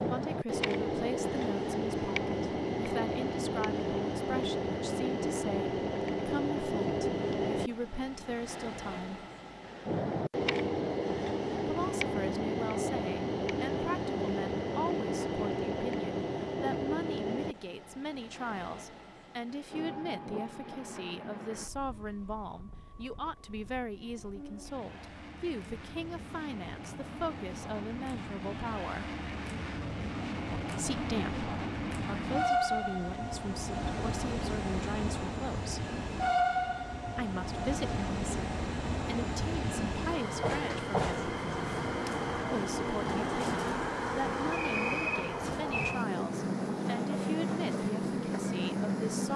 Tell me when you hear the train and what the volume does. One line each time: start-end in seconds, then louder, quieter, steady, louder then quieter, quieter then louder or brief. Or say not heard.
0.0-49.3 quieter then louder.